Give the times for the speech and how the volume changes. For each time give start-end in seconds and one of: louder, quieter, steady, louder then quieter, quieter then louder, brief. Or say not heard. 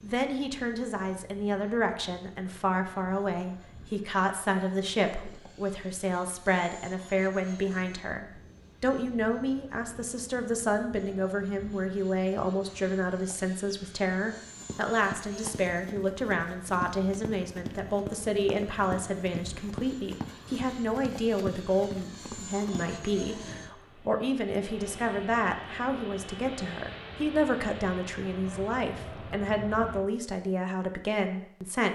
0.0-31.9 steady.